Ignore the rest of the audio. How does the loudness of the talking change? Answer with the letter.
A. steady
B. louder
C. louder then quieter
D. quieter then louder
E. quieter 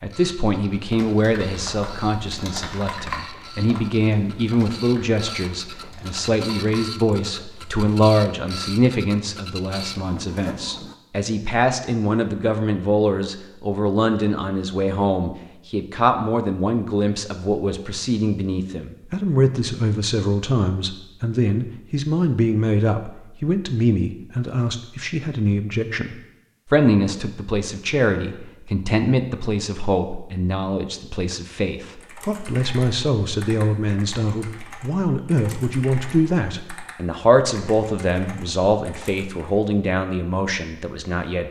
A.